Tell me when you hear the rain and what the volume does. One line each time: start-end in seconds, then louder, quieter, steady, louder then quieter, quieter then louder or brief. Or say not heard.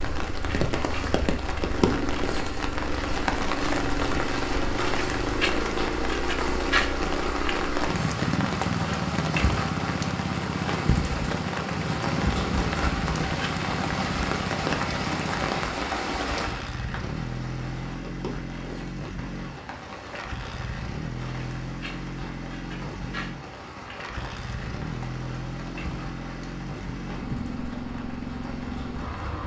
0.0-29.4 quieter.